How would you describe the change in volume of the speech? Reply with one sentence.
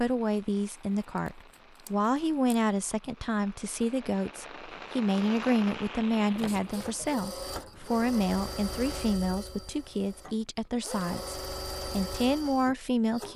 The volume of the speech stays about the same.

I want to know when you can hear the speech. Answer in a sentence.
You can hear the speech from 0.0 to 13.3 s.